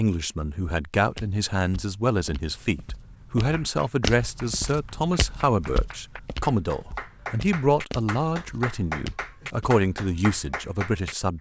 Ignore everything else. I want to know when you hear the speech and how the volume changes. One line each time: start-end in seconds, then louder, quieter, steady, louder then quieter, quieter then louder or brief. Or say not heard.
0.0-11.3 steady.